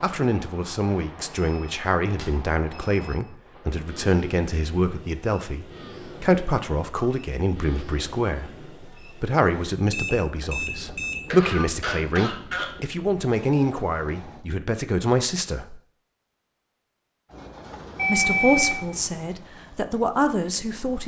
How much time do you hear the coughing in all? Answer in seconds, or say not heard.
2 s.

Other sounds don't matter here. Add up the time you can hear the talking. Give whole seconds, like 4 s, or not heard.
19 s.